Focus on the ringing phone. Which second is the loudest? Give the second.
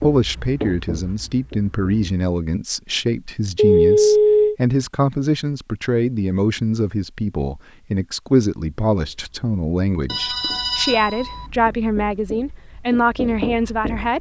4 s.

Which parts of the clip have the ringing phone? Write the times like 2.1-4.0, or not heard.
3.5-4.5, 10.1-11.4.